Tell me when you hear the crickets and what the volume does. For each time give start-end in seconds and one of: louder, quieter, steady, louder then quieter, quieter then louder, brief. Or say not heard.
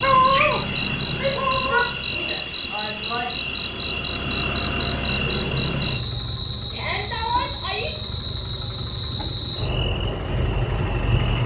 0.0-11.4 steady.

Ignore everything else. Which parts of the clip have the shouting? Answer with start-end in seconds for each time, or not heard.
1.1-3.3, 6.7-7.9.